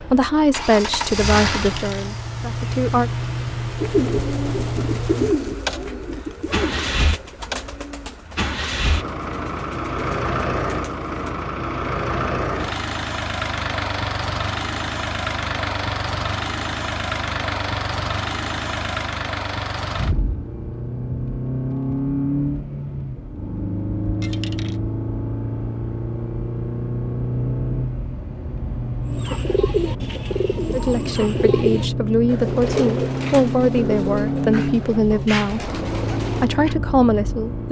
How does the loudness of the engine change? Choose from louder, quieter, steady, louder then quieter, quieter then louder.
steady.